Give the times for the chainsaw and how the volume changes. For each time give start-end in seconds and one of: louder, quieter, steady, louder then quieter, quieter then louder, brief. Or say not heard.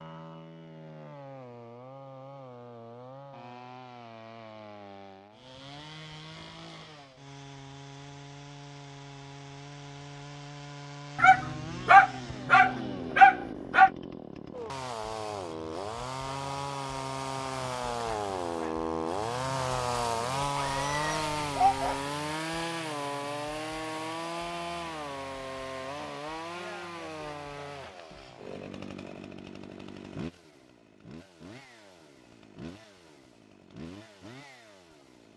0.0-35.3 louder then quieter.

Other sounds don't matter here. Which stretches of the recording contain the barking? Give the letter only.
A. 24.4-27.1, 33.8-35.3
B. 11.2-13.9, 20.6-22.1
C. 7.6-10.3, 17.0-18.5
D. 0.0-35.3
B.